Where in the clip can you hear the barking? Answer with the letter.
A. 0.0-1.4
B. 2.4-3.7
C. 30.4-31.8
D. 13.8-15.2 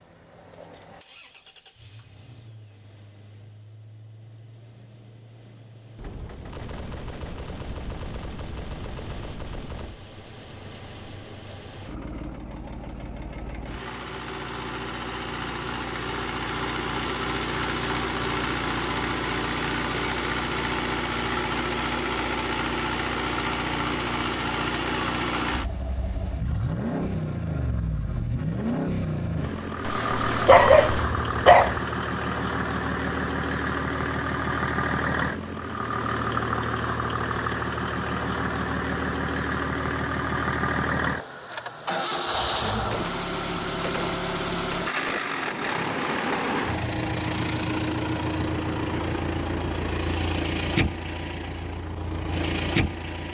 C.